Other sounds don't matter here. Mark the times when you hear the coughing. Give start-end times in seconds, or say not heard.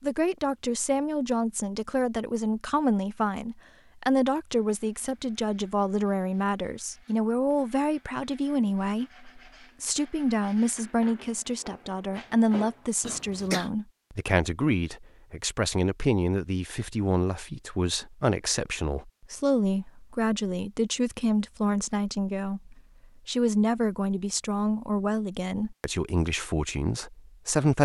13.0-13.7.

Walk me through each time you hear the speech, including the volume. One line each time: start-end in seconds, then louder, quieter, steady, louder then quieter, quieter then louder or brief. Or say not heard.
0.0-27.8 steady.